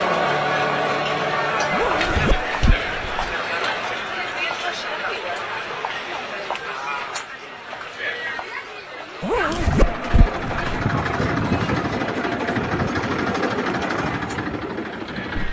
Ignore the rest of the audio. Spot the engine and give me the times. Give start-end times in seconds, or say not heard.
9.4-15.4.